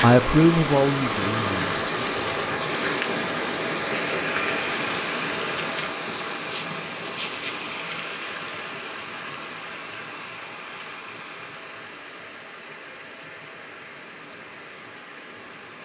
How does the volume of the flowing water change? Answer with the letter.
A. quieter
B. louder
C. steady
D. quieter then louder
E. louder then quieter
A.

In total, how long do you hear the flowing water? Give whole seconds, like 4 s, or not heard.
16 s.